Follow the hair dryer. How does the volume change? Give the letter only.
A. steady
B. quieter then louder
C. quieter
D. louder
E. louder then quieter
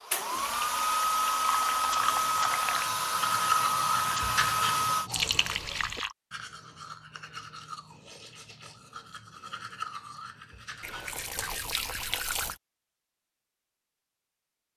A.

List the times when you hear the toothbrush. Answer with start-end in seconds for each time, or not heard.
1.9-11.8.